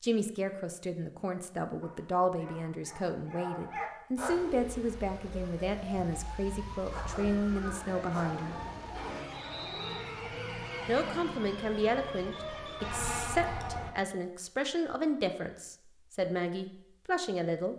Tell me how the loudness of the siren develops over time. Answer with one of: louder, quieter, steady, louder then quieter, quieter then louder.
louder.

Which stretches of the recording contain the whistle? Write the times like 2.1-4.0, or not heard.
9.3-10.1.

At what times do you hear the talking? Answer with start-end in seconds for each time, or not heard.
0.0-8.6, 10.8-17.7.